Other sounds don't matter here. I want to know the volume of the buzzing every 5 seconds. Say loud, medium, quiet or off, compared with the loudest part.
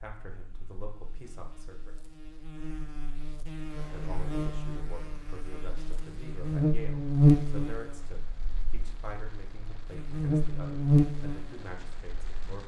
quiet, loud, loud.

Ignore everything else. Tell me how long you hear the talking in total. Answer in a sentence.
The talking can be heard for 11 seconds in total.